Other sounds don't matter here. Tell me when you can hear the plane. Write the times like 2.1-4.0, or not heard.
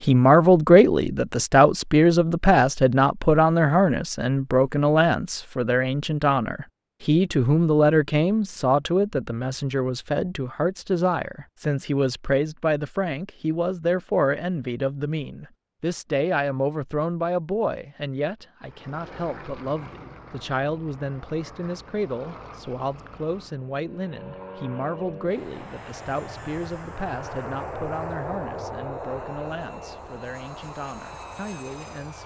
18.6-32.2.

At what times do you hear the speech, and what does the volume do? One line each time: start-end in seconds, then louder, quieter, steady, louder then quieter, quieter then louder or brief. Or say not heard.
0.0-32.2 quieter.